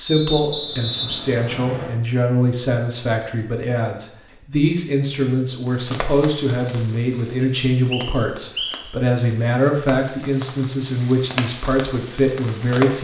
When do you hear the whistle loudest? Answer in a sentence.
The loudest moment of the whistle is at 1 second.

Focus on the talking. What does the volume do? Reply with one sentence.
The loudness of the talking stays about the same.